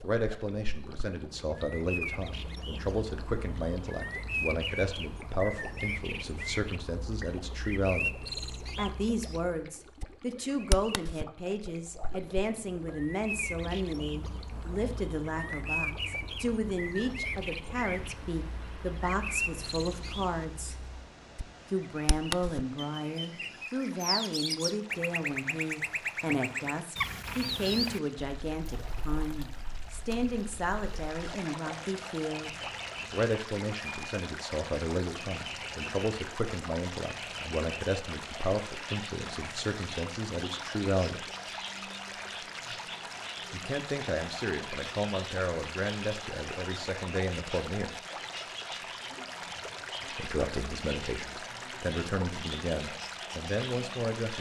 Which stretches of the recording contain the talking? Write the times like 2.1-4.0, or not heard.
0.0-8.2, 8.8-20.8, 21.7-32.5, 33.1-41.2, 43.5-48.0, 50.1-54.3.